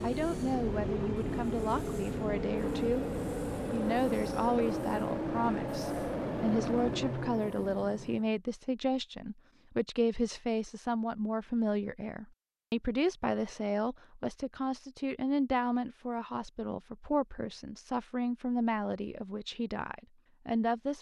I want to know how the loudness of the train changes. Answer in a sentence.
The loudness of the train stays about the same.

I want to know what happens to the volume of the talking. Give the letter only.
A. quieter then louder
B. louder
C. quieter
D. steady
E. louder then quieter
D.